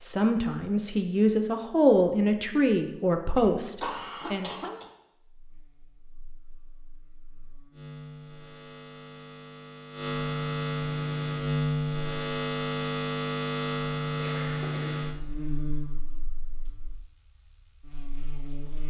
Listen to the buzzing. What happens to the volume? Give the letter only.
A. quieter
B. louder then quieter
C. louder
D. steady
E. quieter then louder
B.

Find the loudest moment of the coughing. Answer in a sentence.
The loudest moment of the coughing is at 4 seconds.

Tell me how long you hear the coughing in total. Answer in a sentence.
The coughing can be heard for 2 seconds in total.